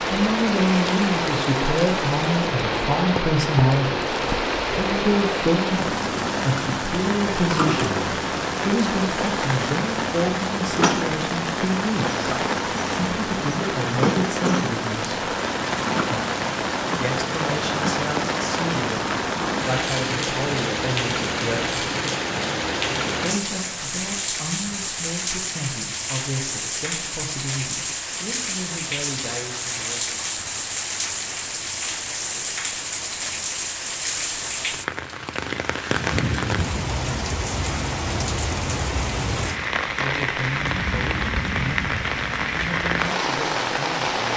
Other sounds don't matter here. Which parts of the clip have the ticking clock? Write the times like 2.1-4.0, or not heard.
not heard.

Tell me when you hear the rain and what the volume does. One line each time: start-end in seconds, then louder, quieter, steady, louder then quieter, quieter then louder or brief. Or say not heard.
0.0-44.3 steady.